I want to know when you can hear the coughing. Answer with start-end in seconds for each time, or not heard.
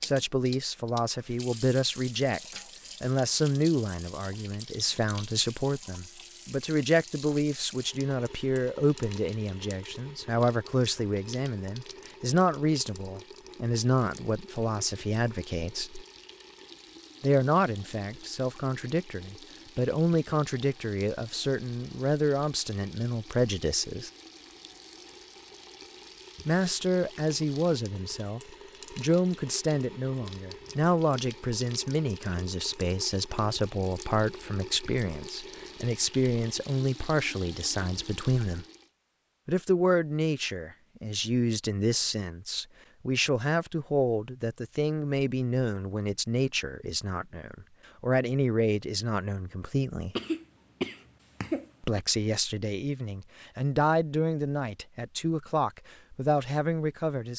50.1-52.0.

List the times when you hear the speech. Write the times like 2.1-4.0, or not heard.
0.0-16.1, 17.2-24.1, 26.4-38.6, 39.5-50.1, 51.8-57.3.